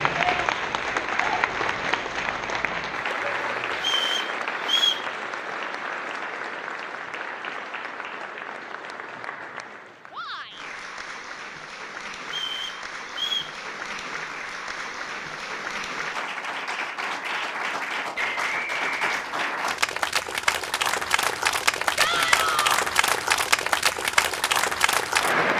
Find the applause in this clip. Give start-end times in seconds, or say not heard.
0.0-25.5.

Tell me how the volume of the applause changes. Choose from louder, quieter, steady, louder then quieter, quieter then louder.
quieter then louder.